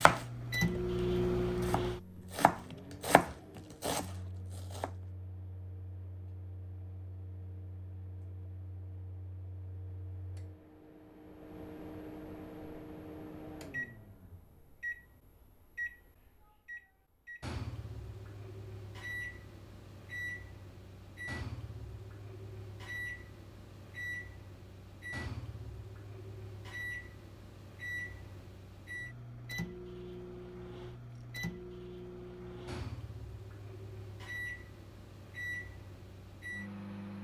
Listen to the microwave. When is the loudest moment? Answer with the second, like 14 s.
1 s.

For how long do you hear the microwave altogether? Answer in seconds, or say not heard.
37 s.